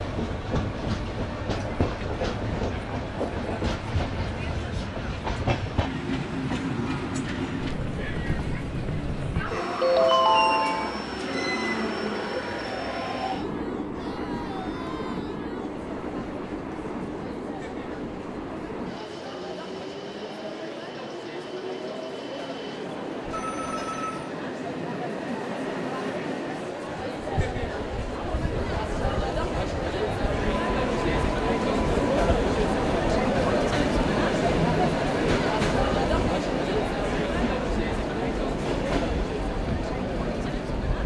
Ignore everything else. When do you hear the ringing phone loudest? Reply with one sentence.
The volume of the ringing phone peaks at 10 seconds.